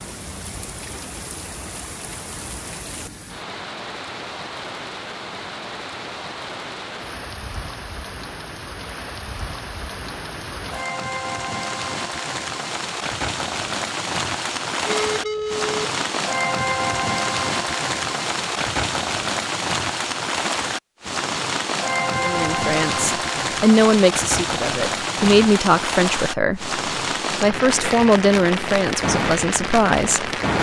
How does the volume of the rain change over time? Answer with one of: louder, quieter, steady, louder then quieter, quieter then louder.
louder.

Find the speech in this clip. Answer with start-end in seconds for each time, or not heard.
22.1-30.3.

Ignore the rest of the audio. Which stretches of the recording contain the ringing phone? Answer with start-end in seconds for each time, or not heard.
14.8-15.8.